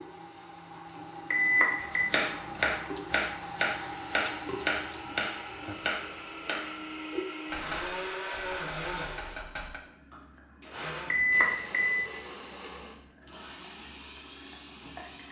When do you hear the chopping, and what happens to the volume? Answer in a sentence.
You can hear the chopping from 1.8 to 9.8 s, getting quieter.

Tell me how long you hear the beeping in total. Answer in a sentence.
You can hear the beeping for 2 seconds altogether.